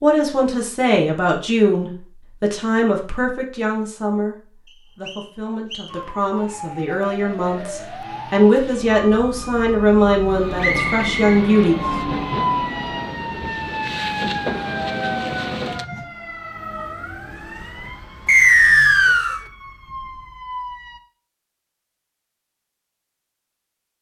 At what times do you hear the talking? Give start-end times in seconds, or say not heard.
0.0-11.8.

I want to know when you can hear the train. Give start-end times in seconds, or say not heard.
10.3-16.1.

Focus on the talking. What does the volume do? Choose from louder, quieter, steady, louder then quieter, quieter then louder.
quieter then louder.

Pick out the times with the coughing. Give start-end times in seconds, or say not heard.
not heard.